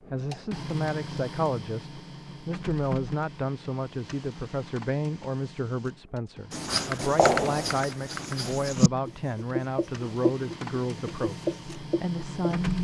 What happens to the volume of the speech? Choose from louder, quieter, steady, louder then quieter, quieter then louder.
steady.